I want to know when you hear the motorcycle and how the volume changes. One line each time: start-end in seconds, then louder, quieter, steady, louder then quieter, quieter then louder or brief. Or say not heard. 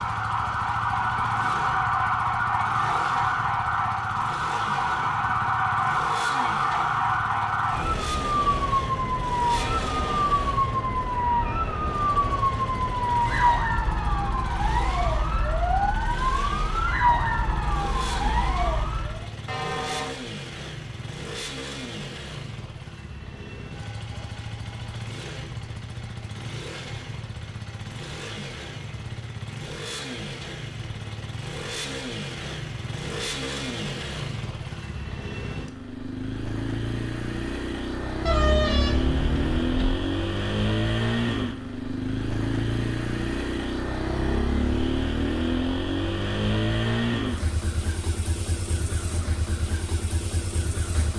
0.0-51.1 louder.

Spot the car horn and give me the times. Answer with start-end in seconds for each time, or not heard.
9.5-10.2, 19.4-20.1, 38.2-40.0.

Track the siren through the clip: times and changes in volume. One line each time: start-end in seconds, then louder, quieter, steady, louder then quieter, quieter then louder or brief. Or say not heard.
0.0-19.2 steady.